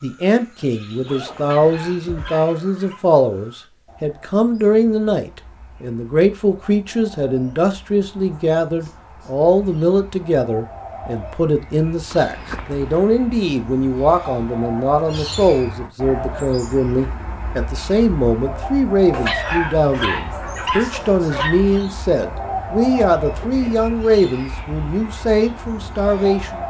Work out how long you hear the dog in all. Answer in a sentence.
The dog can be heard for 4 seconds in total.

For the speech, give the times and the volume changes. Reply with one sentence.
You can hear the speech from 0.0 to 26.6 s, at a steady volume.